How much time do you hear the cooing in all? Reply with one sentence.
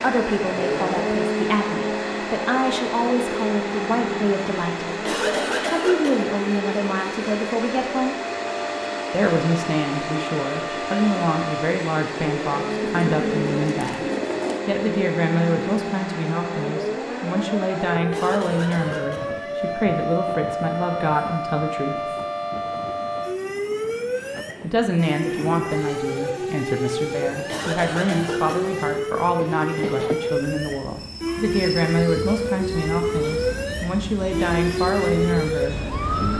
You can hear the cooing for 2 seconds altogether.